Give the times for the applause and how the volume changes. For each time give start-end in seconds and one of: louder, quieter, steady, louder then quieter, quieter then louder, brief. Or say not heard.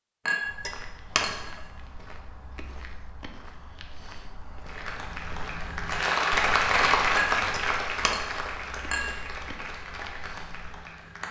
4.6-11.2 louder then quieter.